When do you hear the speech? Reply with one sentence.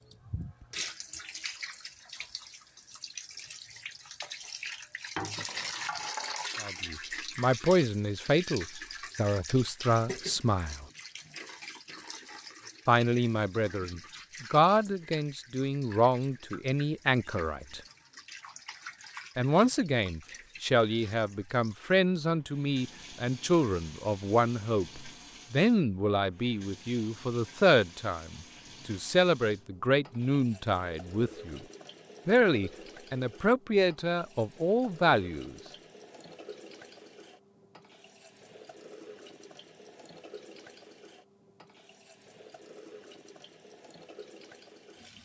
You can hear the speech from 6.6 to 10.8 s, from 12.8 to 17.8 s, from 19.4 to 31.6 s and from 32.2 to 35.5 s.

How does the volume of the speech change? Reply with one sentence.
The volume of the speech stays about the same.